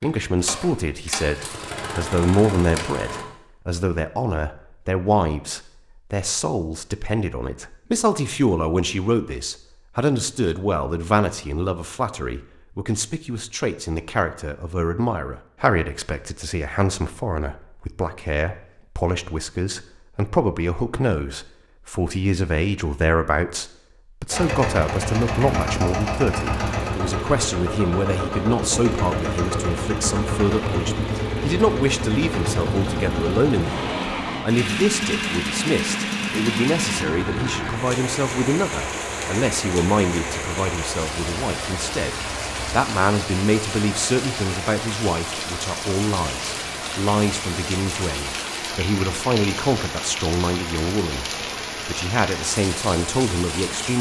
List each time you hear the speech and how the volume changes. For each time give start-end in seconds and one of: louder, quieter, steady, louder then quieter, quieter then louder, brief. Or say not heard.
0.0-51.2 steady
51.9-53.9 brief.